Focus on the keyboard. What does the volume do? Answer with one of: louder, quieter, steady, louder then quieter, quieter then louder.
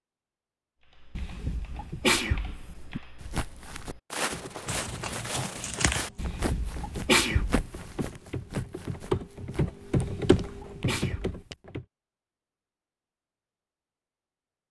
louder.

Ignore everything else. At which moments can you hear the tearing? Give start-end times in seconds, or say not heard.
4.7-6.1.